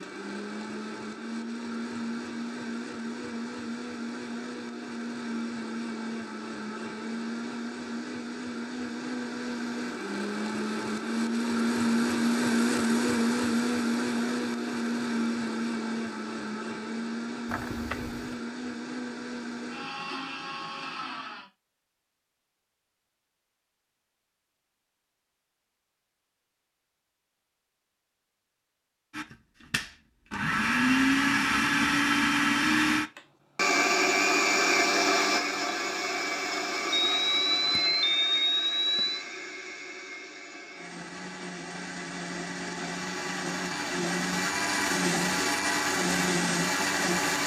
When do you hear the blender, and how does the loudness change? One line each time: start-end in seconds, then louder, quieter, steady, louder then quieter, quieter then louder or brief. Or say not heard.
0.0-21.5 louder then quieter
29.1-47.4 quieter then louder.